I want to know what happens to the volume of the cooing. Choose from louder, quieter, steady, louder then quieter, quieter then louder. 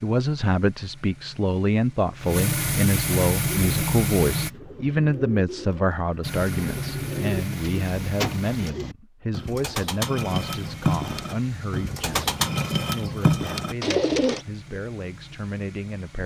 louder.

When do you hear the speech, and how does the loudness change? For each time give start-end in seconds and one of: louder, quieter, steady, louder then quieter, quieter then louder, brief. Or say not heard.
0.0-16.2 quieter.